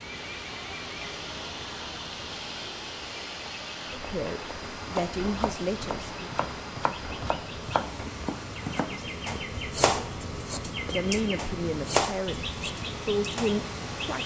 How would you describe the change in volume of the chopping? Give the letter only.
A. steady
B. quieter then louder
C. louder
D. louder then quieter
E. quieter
C.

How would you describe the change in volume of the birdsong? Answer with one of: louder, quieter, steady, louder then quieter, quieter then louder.
louder.